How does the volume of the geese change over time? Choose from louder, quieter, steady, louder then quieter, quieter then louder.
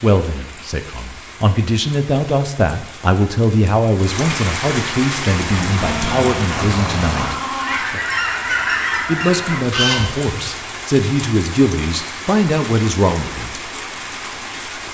louder.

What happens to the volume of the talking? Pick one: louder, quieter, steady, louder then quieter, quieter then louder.
steady.